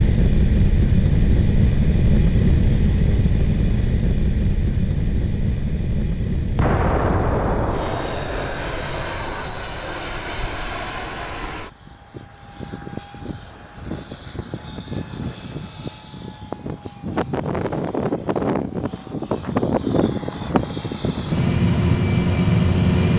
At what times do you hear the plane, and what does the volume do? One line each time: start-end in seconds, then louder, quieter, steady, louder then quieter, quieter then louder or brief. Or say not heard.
0.0-23.1 quieter then louder.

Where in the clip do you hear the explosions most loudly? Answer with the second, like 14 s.
7 s.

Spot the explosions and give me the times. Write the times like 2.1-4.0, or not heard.
6.5-8.8.